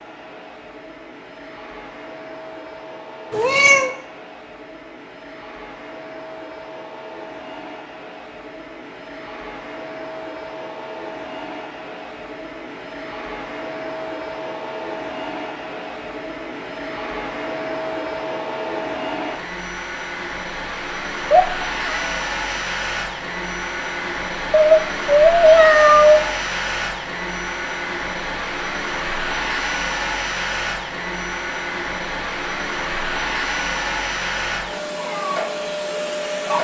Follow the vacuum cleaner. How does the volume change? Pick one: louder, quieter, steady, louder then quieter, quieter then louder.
louder.